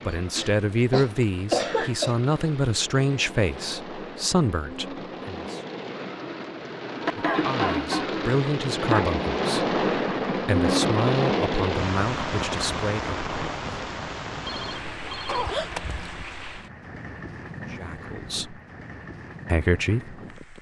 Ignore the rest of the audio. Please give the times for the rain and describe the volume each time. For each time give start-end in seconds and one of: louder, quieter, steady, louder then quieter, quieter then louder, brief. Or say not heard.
0.0-20.5 louder then quieter.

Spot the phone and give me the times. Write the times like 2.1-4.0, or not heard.
14.4-15.8.